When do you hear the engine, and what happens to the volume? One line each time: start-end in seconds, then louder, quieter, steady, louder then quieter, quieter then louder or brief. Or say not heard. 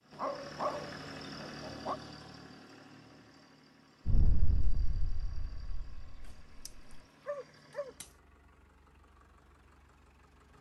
0.0-10.5 quieter.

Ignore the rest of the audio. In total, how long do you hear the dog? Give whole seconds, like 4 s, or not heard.
4 s.